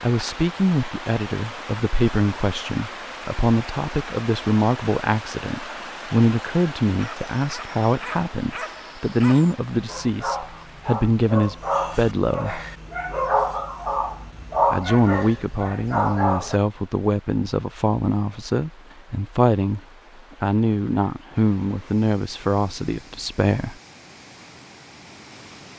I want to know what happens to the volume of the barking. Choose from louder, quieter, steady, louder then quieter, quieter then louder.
louder.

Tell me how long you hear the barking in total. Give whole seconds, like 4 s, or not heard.
10 s.